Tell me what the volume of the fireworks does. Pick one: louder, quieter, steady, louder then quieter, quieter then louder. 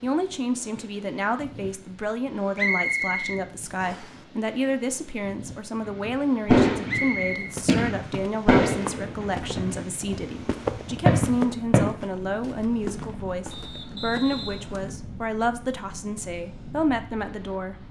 quieter then louder.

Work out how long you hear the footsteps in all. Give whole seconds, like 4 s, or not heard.
8 s.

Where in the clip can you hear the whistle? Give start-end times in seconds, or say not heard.
2.5-4.2, 6.8-7.5, 13.5-14.7.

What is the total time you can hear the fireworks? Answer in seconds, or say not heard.
6 s.